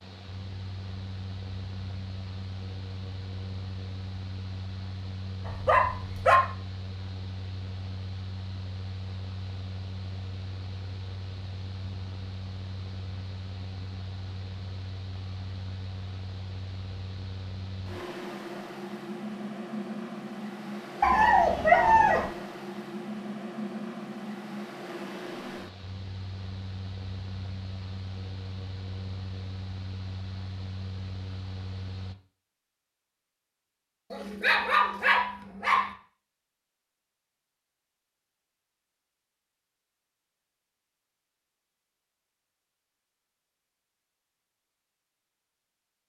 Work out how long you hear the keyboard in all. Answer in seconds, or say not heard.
not heard.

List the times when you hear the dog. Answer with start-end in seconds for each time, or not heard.
5.5-6.4, 21.0-22.3, 34.1-35.9.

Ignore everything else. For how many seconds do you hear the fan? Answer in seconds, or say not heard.
32 s.